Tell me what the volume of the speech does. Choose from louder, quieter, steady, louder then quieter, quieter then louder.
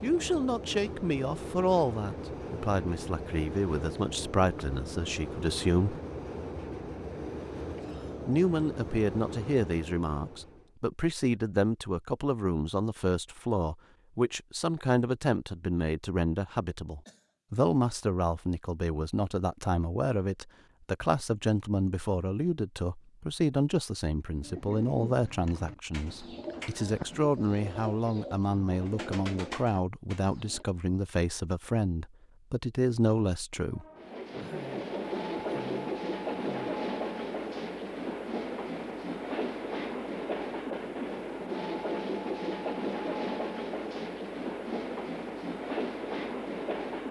steady.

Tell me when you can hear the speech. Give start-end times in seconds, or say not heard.
0.0-6.0, 8.2-33.9.